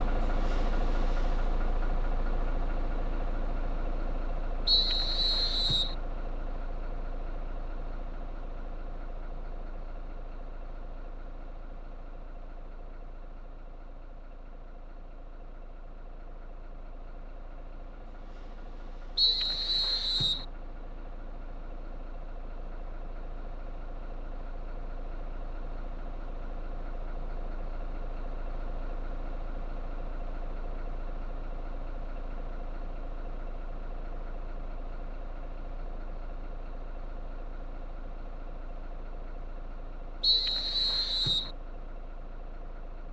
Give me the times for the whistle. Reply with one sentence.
You can hear the whistle from 4.7 to 6.0 s, from 19.1 to 20.4 s and from 40.2 to 41.5 s.